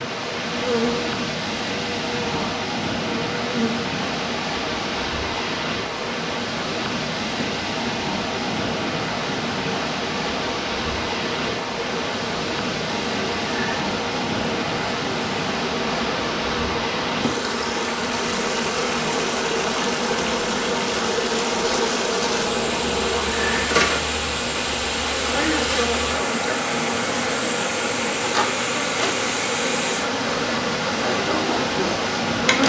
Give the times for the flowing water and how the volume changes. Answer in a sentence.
The flowing water can be heard from 0.0 to 32.6 s, at a steady volume.